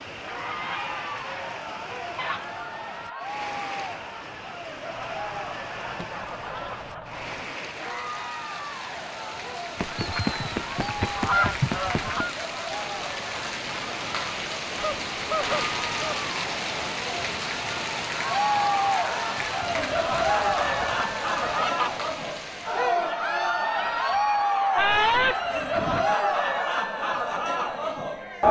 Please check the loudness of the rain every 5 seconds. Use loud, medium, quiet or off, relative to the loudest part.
medium, medium, loud, loud, medium, off.